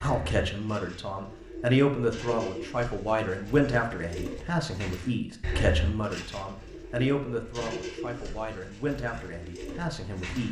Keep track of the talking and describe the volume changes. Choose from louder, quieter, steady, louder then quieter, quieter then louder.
quieter.